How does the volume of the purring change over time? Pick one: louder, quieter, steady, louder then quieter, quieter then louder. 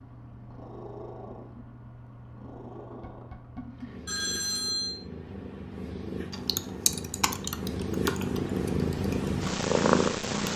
louder.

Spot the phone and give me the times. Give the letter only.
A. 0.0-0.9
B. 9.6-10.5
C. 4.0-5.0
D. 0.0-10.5
C.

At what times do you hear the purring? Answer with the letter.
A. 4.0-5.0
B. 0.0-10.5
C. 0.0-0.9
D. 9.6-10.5
B.